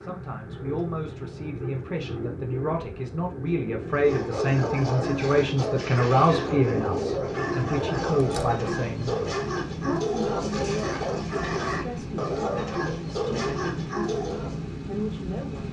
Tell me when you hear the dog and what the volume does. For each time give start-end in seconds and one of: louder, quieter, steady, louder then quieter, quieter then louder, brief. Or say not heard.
4.0-14.6 steady.